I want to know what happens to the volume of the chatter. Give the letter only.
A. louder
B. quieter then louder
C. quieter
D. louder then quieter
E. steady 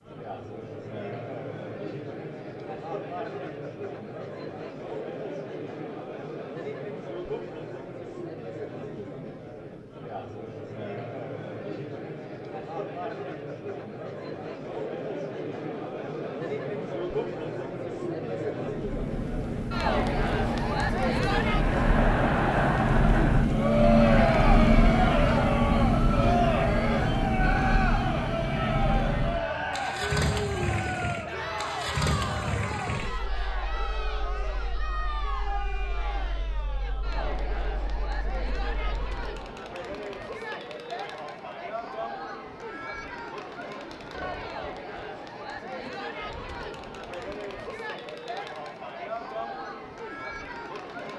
D.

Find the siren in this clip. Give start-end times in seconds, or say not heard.
not heard.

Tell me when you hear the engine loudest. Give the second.
24 s.